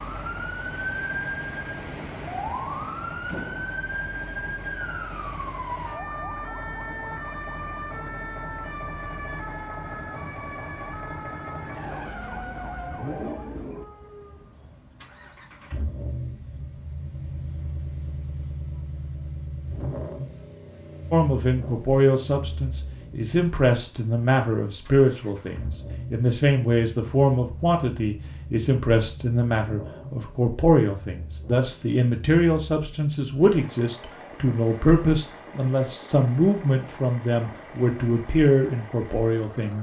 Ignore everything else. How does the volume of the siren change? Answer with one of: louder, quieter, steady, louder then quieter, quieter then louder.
quieter.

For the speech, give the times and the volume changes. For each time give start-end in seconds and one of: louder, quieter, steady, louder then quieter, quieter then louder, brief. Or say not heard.
21.1-39.7 steady.